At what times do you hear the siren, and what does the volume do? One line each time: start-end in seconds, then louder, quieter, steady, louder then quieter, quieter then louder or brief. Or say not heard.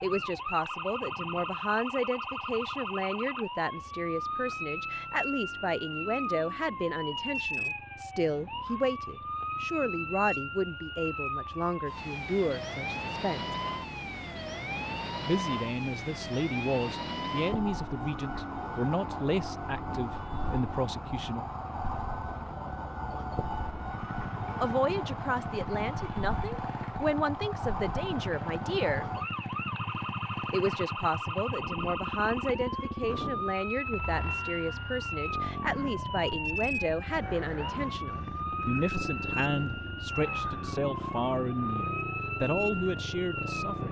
0.0-43.8 steady.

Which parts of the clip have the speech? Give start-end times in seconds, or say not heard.
0.0-13.6, 15.2-21.4, 24.6-29.1, 30.5-43.8.